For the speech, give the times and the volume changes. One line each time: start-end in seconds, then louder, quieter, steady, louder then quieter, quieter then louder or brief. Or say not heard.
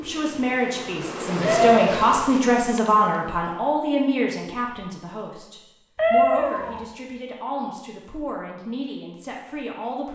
0.0-10.1 quieter.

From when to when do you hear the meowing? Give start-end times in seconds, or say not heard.
1.4-2.1, 6.0-6.8.